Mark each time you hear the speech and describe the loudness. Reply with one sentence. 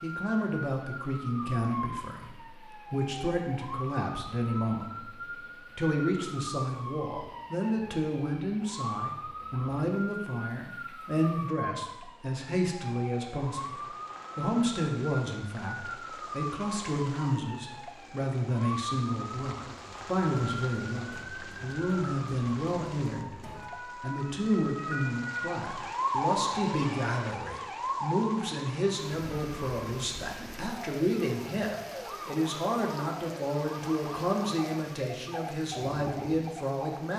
The speech can be heard from 0.0 to 37.1 s, at a steady volume.